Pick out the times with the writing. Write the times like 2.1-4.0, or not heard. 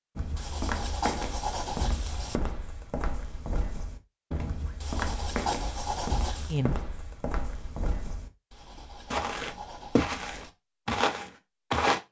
0.3-2.4, 4.8-6.6, 8.5-10.5.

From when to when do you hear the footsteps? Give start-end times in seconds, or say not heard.
0.1-8.3, 9.1-12.0.